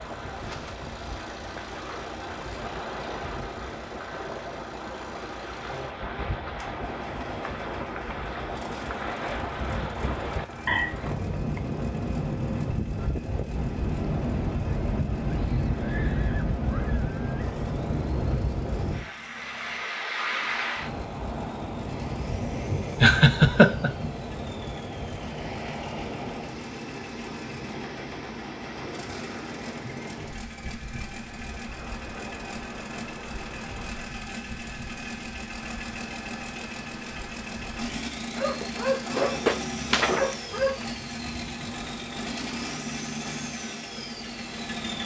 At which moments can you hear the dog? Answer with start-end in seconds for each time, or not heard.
38.4-40.9.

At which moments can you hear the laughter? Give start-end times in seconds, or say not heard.
10.7-11.8, 23.0-23.9.